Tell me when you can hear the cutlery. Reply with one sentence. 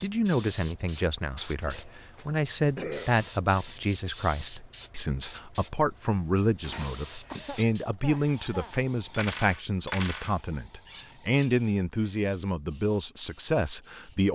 You can hear the cutlery from 6.6 to 12.4 s.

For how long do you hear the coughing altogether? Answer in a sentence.
You can hear the coughing for 3 seconds altogether.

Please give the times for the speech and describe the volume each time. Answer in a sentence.
The speech can be heard from 0.0 to 14.3 s, at a steady volume.